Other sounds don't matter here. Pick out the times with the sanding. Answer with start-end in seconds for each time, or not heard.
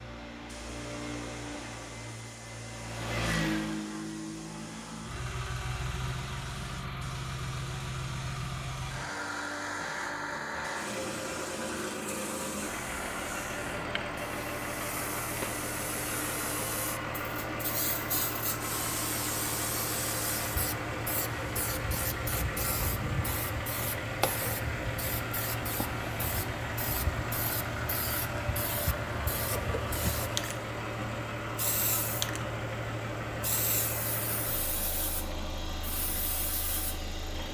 not heard.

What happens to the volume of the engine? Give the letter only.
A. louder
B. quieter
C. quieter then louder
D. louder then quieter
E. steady
E.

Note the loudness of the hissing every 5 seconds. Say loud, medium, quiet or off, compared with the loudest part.
quiet, quiet, medium, loud, loud, loud, loud, medium.